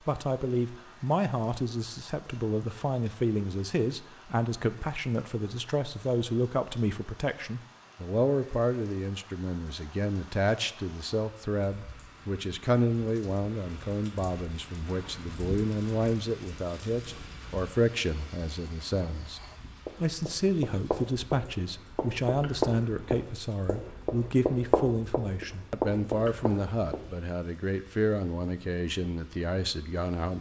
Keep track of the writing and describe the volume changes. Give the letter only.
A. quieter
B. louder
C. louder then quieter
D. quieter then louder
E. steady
B.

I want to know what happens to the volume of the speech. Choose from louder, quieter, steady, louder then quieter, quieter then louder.
steady.